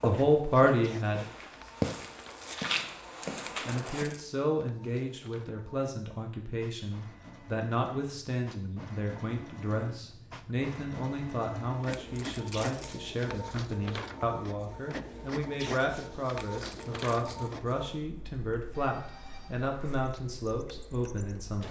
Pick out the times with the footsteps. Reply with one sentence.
You can hear the footsteps from 0.0 to 4.0 s.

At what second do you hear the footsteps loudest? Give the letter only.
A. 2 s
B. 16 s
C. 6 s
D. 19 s
A.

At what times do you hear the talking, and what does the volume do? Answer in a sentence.
You can hear the talking briefly from 0.0 to 1.2 s; and from 3.6 to 21.6 s, at a steady volume.